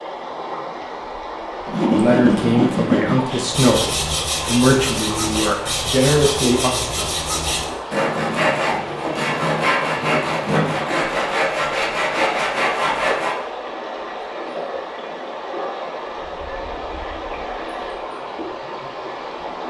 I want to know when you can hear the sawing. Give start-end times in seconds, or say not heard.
1.6-13.3.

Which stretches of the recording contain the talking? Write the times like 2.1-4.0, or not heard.
1.9-6.7.